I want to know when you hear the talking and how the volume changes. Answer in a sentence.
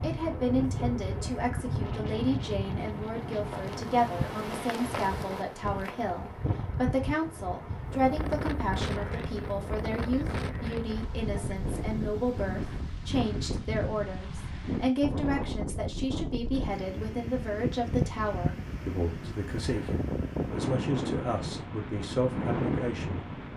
The talking can be heard from 0.0 to 23.3 s, at a steady volume.